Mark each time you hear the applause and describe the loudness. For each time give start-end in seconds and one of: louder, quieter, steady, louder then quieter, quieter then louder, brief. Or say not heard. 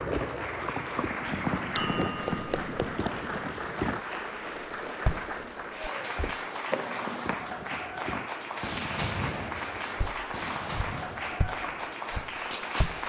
0.0-13.0 steady.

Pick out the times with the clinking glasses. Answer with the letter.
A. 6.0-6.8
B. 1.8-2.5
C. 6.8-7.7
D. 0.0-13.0
B.